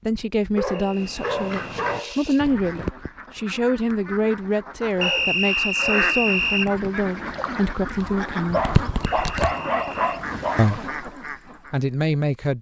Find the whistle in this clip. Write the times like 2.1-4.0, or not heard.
0.7-2.4, 5.0-6.7, 9.0-10.2.